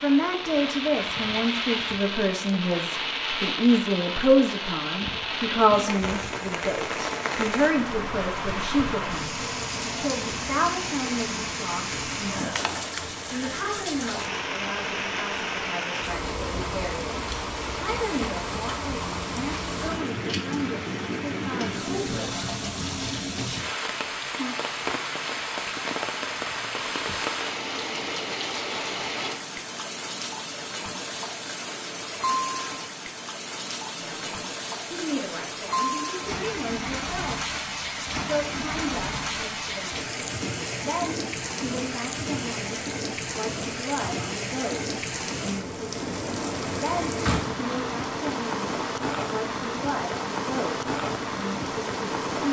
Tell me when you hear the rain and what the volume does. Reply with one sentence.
The rain can be heard from 0.0 to 52.4 s, at a steady volume.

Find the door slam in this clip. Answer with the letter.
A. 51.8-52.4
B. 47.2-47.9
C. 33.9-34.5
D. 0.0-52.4
B.